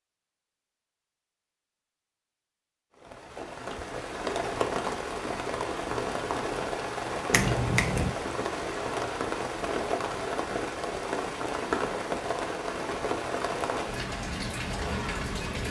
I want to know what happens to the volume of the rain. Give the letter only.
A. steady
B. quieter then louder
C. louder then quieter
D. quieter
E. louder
A.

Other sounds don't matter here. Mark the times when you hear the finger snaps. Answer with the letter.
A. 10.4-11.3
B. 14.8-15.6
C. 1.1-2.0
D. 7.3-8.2
D.